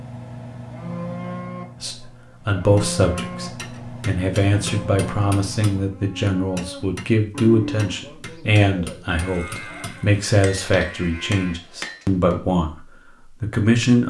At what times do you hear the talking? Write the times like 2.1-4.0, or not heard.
1.8-14.0.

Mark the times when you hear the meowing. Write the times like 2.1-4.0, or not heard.
not heard.